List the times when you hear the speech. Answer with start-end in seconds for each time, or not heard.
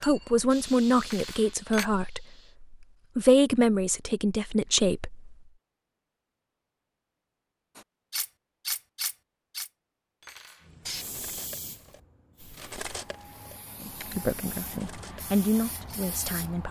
0.0-5.3, 13.8-16.6.